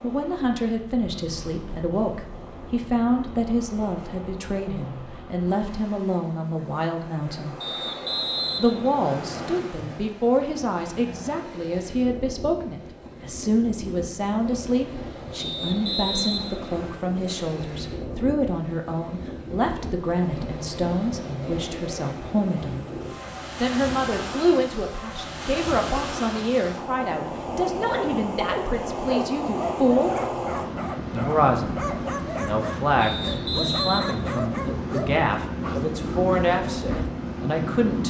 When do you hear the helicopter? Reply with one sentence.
The helicopter can't be heard in this clip.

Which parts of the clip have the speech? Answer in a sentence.
You can hear the speech from 0.0 to 7.5 s, from 8.6 to 22.9 s, from 23.6 to 30.1 s and from 31.1 to 38.0 s.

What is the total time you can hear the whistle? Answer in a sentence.
You can hear the whistle for 5 seconds altogether.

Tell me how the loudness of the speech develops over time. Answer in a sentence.
The loudness of the speech stays about the same.